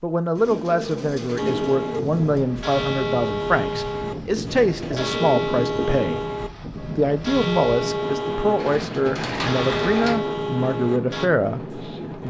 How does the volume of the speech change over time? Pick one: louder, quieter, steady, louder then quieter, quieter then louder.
steady.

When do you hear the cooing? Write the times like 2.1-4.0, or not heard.
0.3-2.5, 4.2-6.2, 8.6-10.2.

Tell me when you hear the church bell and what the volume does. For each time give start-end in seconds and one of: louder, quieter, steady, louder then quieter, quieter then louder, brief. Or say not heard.
1.4-11.3 steady.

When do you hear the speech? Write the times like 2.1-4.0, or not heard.
0.0-12.2.